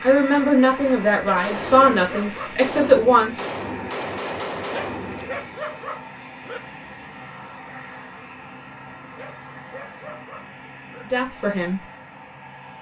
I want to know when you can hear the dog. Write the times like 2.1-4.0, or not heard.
1.1-2.5, 4.6-6.6, 9.1-11.1.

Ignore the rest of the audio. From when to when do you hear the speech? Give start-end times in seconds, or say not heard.
0.0-3.5, 11.1-11.8.